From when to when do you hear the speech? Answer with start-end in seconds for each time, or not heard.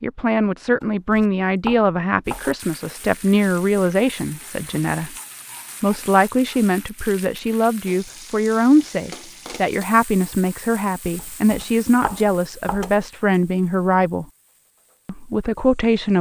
0.0-5.2, 5.8-14.2, 15.1-16.1.